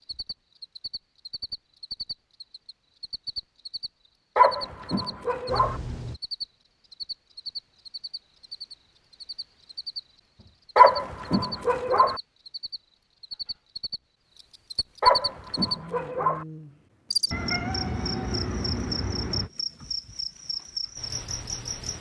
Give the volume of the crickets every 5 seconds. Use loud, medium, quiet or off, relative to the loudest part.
medium, medium, medium, loud, loud.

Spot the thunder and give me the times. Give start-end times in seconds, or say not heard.
not heard.